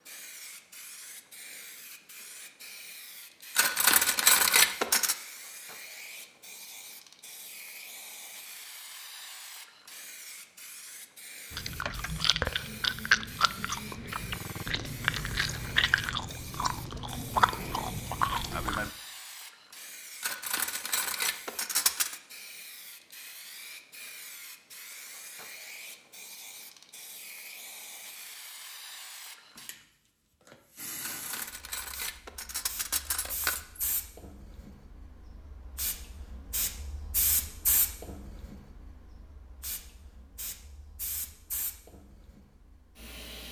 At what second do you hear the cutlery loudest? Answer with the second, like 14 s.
4 s.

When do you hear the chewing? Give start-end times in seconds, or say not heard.
11.5-18.9.